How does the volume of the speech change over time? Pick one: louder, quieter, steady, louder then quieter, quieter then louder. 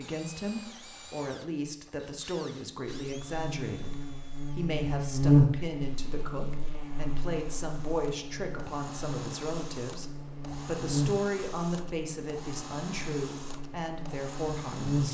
steady.